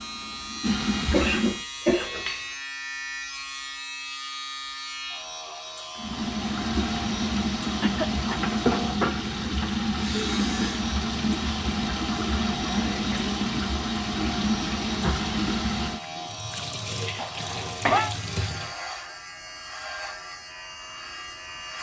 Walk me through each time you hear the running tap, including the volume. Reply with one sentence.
You can hear the running tap briefly from 0.0 to 1.6 s; and from 6.0 to 18.8 s, getting quieter.